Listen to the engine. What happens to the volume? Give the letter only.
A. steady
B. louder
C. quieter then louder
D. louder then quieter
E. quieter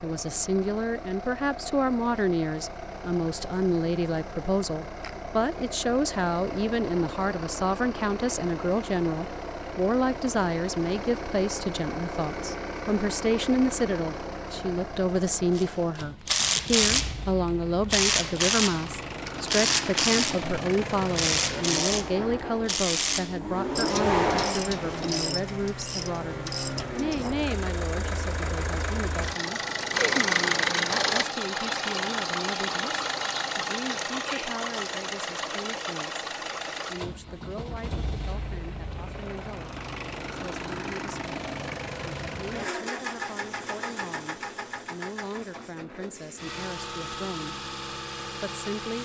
D.